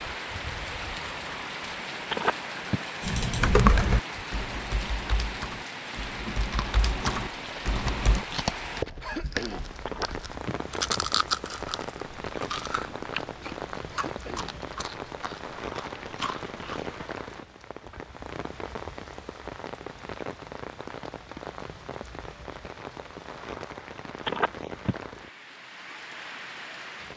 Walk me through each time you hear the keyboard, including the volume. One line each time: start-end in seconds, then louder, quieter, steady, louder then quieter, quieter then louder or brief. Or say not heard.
3.0-8.2 quieter then louder.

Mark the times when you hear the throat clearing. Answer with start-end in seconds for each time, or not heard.
9.0-9.7, 13.9-14.8.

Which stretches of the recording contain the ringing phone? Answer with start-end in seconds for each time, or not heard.
2.1-2.8, 9.8-11.0, 24.2-24.9.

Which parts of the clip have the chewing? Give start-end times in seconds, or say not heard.
6.5-17.1.